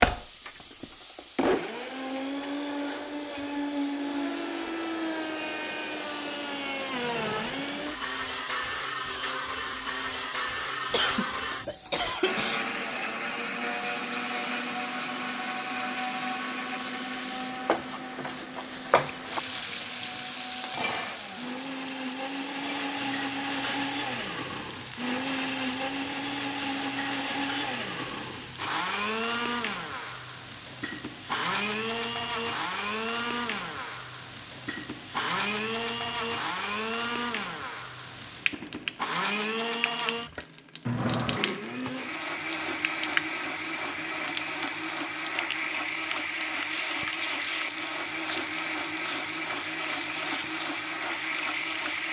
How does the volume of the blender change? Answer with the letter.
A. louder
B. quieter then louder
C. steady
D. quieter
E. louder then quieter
C.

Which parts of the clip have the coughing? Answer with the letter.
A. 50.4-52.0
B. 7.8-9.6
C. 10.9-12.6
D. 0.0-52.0
C.